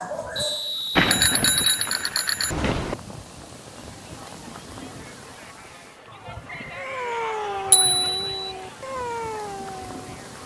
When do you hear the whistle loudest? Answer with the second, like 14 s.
1 s.